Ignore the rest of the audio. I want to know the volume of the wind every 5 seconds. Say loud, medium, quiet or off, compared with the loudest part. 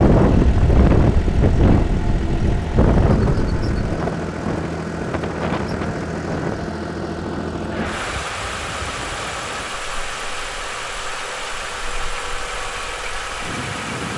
loud, medium, quiet.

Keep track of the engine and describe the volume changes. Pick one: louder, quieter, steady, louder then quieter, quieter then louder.
steady.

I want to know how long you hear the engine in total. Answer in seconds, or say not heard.
14 s.